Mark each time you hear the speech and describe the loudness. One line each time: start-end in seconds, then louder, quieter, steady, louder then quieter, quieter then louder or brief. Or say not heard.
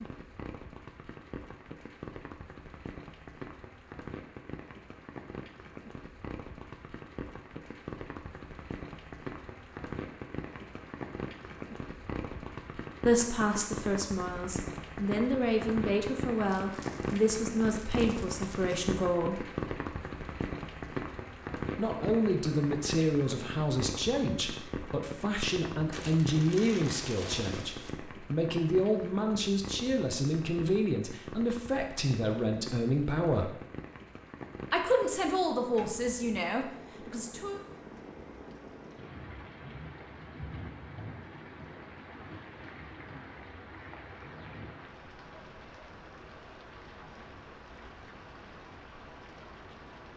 13.0-19.4 steady
21.8-33.5 steady
34.7-37.6 brief.